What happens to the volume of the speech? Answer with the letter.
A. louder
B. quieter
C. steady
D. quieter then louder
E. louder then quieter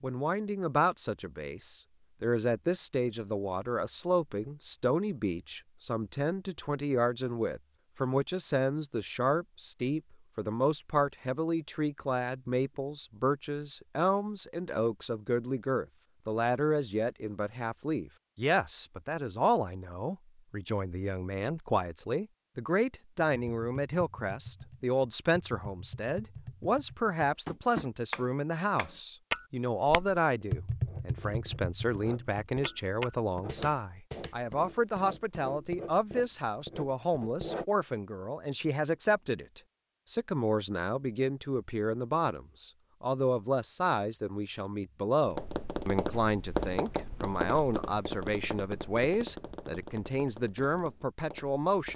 C.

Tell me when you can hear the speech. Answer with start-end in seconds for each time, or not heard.
0.0-51.9.